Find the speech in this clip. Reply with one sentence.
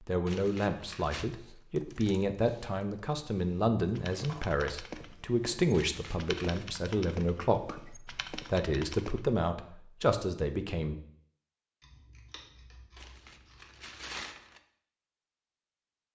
You can hear the speech from 0.0 to 10.9 s.